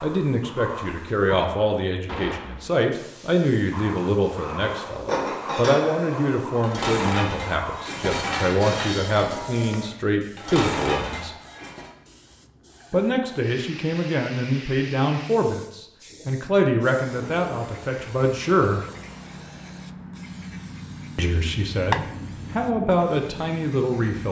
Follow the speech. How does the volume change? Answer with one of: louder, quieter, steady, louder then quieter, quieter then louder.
steady.